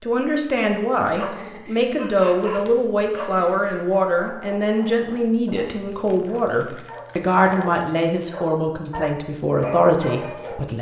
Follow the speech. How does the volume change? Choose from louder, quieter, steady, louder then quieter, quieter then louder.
steady.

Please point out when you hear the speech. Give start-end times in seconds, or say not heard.
0.0-10.7.